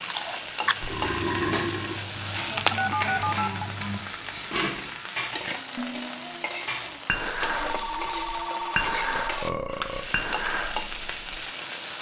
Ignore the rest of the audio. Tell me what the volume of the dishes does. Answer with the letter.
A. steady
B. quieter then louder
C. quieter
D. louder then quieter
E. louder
E.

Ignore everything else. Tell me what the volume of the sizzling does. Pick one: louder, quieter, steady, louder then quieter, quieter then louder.
steady.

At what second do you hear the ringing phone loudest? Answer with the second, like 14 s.
3 s.